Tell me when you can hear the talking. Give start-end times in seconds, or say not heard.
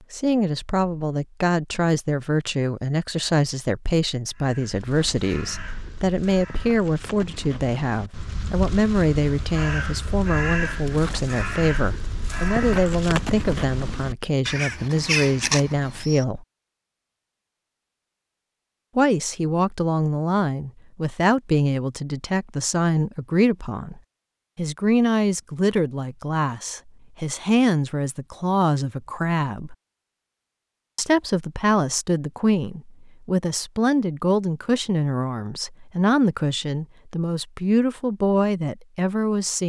0.1-16.4, 18.9-29.8, 30.9-39.6.